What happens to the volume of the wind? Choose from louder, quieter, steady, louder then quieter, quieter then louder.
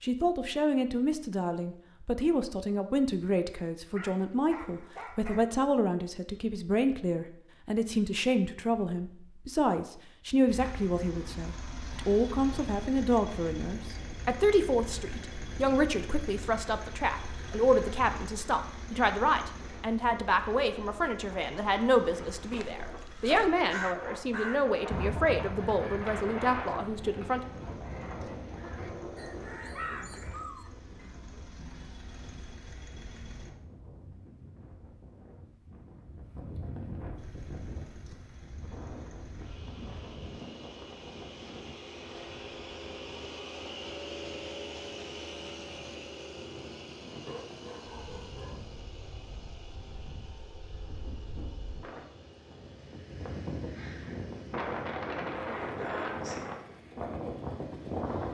quieter then louder.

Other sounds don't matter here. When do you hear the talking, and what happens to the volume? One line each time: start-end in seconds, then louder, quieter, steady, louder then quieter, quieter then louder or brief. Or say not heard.
0.0-27.4 steady.